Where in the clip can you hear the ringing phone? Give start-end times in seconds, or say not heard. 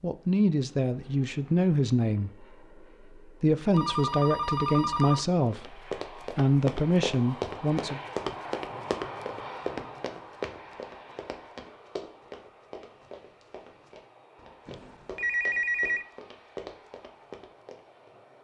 3.7-5.2, 14.7-16.1.